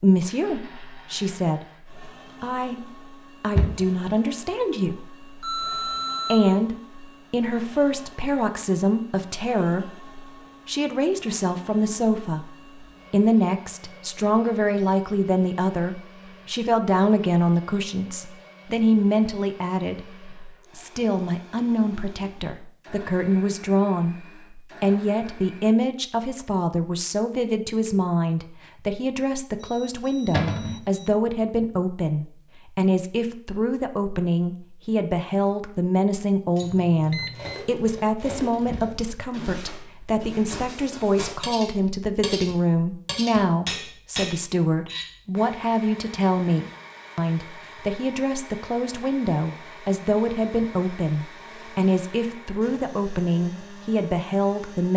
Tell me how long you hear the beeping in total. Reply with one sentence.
You can hear the beeping for 4 seconds altogether.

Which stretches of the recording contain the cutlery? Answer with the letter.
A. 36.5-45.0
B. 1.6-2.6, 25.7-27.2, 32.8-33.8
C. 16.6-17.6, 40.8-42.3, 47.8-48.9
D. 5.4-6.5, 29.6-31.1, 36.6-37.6
A.